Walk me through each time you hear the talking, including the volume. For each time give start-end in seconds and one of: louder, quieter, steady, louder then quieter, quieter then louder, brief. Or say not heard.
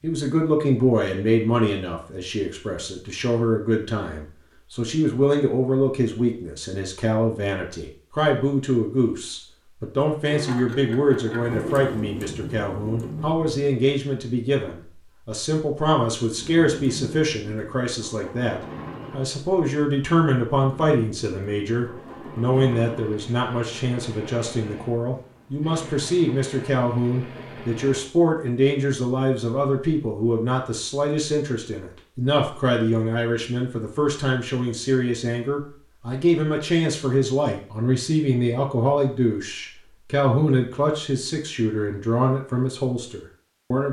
0.0-43.8 steady.